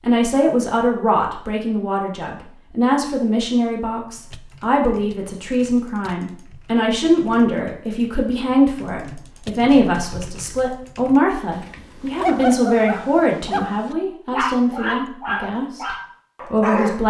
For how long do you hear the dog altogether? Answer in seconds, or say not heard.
5 s.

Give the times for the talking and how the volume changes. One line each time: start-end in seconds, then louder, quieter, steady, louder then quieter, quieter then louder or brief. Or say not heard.
0.0-15.8 steady
16.5-17.0 brief.